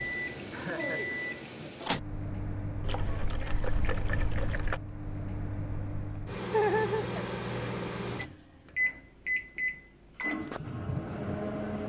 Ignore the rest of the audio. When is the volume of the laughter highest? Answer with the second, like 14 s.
7 s.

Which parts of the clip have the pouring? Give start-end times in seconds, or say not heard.
2.8-4.8.